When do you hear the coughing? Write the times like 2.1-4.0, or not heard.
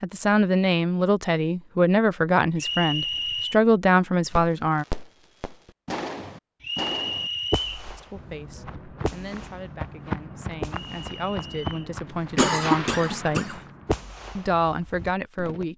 12.3-13.6.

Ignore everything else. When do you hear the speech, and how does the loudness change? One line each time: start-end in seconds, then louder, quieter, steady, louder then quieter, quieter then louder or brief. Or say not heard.
0.0-4.8 steady
8.0-13.6 louder
14.3-15.7 brief.